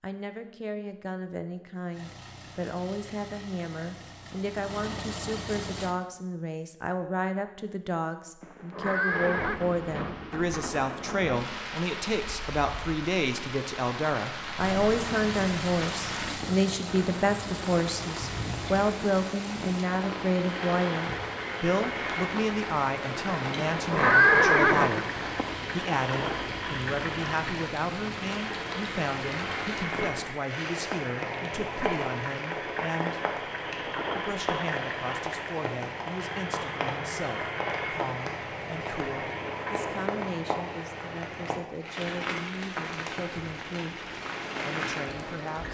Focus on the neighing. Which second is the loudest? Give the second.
24 s.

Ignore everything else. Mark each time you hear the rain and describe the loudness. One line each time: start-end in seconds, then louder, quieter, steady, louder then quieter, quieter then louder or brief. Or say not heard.
9.1-45.6 steady.